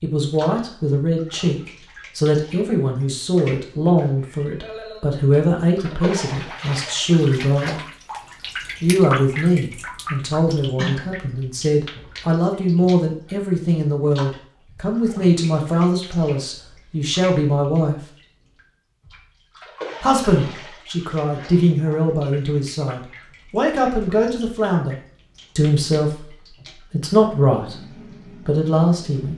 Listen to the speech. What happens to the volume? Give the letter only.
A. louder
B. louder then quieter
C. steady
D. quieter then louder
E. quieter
C.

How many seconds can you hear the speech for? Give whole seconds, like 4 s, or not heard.
26 s.